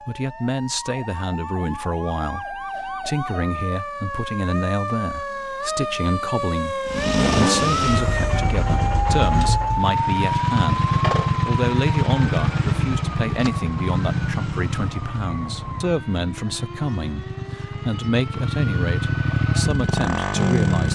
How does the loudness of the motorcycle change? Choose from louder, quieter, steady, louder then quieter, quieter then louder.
quieter then louder.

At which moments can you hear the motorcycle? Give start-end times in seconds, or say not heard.
6.8-20.9.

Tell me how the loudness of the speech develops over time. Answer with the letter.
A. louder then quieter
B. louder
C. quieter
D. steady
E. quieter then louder
D.